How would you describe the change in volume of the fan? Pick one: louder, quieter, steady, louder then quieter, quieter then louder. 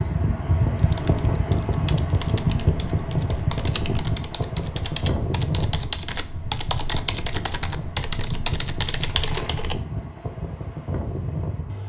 quieter.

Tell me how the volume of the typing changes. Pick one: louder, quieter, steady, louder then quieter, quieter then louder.
louder.